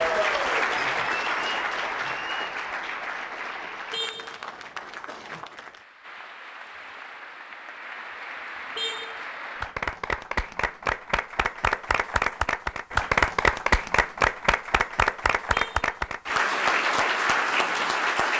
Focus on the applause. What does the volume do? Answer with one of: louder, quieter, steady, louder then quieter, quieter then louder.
quieter then louder.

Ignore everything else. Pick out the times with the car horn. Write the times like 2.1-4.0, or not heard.
3.9-4.4, 8.8-9.2, 15.5-15.9.